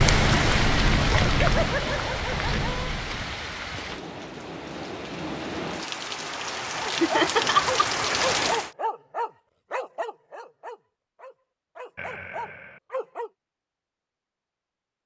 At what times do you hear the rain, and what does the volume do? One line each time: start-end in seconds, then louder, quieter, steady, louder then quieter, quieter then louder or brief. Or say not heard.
0.0-8.7 quieter then louder.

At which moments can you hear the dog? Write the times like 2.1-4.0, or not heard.
6.9-13.3.